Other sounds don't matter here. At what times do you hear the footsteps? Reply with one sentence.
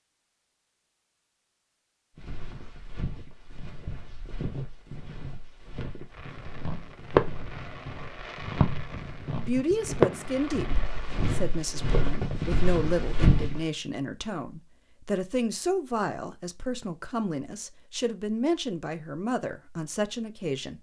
The footsteps can be heard from 2.1 to 13.7 s.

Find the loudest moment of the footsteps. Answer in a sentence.
The loudest moment of the footsteps is at 13 seconds.